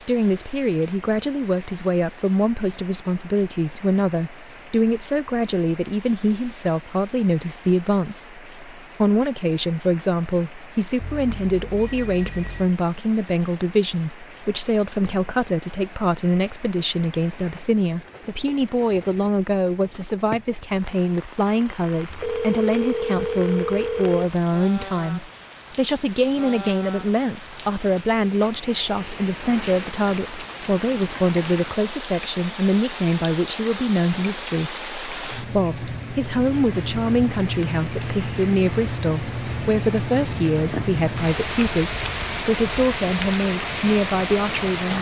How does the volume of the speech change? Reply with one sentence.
The loudness of the speech stays about the same.